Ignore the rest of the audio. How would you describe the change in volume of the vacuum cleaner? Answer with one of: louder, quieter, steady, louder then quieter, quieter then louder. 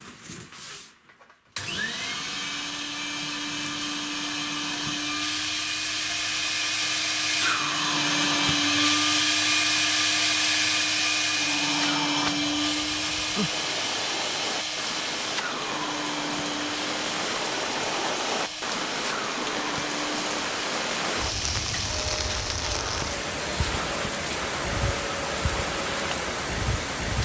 louder then quieter.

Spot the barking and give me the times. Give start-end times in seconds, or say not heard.
not heard.